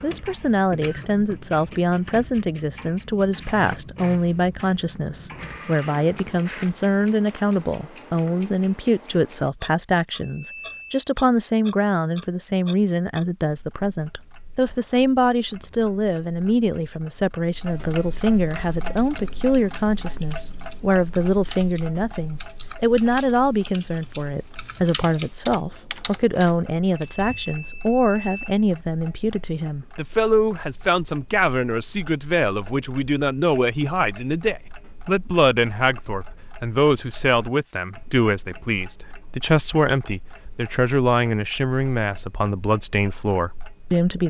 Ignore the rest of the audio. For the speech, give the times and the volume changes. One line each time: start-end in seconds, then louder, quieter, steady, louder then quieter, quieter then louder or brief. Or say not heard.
0.0-44.2 steady.